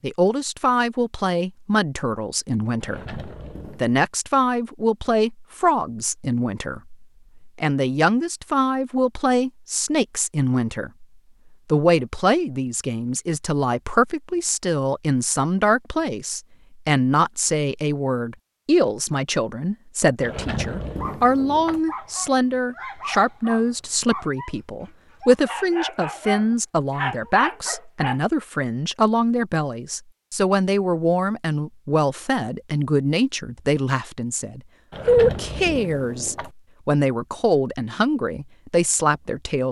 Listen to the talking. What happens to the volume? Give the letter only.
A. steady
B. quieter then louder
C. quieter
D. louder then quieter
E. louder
A.